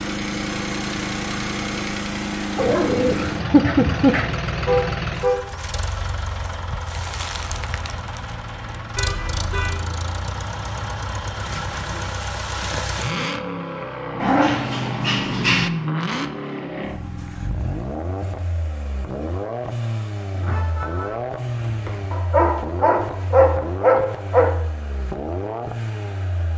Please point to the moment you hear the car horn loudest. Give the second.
5 s.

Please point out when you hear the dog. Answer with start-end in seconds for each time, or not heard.
2.5-4.3, 14.2-15.7, 22.1-24.6.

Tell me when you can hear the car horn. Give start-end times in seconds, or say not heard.
4.5-5.5, 8.9-9.8, 20.3-22.1.